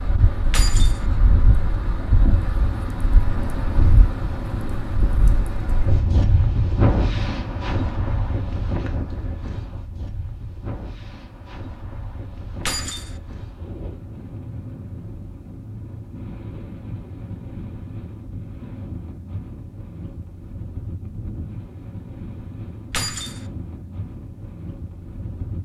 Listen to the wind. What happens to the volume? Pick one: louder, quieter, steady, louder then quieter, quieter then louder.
quieter.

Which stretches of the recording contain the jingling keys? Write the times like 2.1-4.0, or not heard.
0.5-1.0, 12.7-13.1, 22.9-23.4.